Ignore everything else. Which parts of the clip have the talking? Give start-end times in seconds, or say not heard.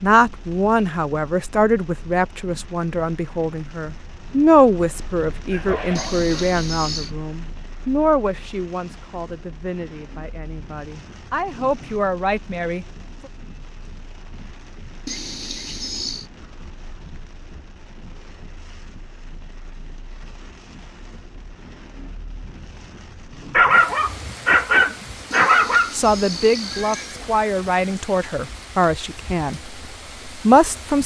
0.0-12.8, 25.9-29.6, 30.2-31.0.